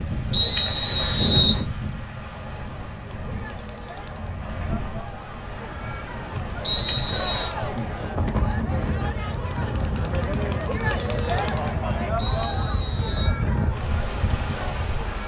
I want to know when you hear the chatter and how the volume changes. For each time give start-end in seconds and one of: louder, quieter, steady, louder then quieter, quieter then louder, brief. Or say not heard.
3.0-15.2 louder then quieter.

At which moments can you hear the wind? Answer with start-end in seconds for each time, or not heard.
0.0-15.2.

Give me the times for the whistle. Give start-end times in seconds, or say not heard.
0.3-1.6, 6.7-7.5, 12.2-13.3.